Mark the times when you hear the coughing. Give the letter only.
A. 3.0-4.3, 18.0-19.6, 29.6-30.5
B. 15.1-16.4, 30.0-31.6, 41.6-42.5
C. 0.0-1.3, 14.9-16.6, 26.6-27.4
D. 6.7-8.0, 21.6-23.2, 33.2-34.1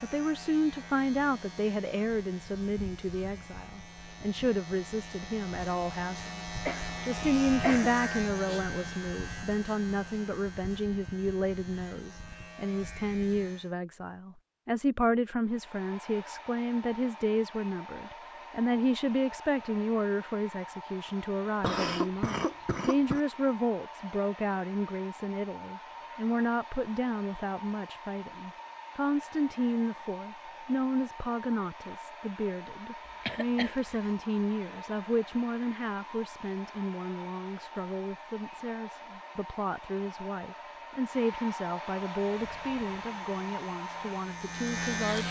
D.